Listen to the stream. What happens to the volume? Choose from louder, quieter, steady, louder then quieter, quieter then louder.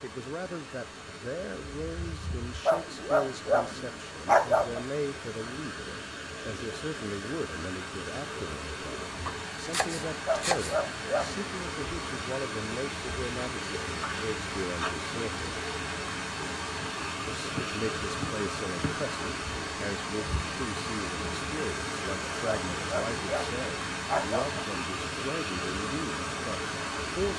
louder.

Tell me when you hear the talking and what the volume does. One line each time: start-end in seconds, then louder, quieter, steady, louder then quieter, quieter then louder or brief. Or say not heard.
0.0-15.4 steady
17.2-27.3 steady.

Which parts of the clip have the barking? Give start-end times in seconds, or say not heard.
2.6-4.8, 10.2-11.4, 22.4-24.6.